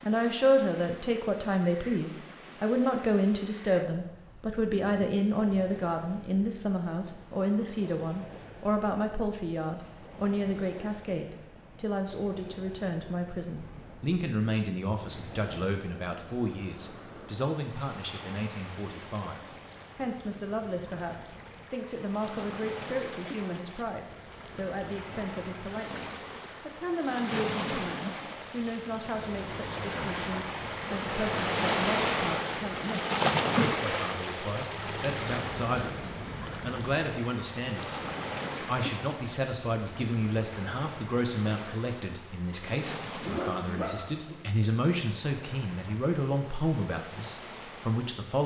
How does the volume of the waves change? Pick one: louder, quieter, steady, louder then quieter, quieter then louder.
louder then quieter.